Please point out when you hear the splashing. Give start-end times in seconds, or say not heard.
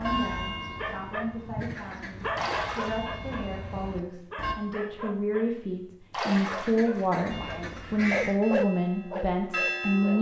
2.4-3.0, 6.1-6.8.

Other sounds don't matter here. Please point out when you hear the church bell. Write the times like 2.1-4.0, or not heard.
0.0-4.5, 7.3-10.1.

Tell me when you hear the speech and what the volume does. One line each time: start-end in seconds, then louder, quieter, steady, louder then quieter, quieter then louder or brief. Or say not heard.
0.0-10.1 louder.